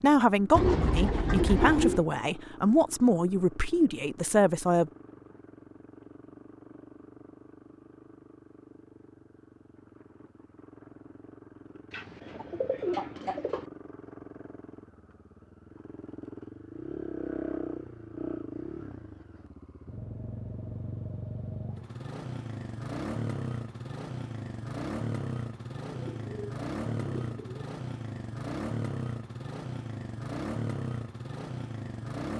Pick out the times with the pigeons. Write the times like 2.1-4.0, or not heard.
0.5-2.0, 11.9-13.7, 25.9-27.7.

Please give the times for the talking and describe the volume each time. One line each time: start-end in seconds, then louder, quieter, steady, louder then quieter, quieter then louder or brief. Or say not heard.
0.0-4.9 steady.